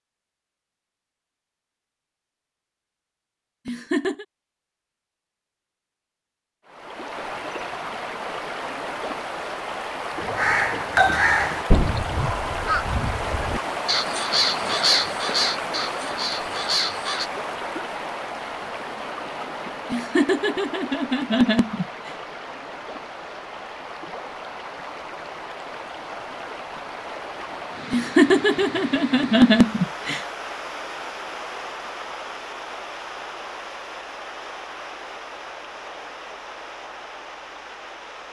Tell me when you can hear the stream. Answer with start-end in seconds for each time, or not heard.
6.7-38.2.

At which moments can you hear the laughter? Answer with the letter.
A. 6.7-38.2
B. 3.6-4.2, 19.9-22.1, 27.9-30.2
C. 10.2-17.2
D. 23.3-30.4
B.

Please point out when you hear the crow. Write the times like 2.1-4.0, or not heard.
10.2-17.2.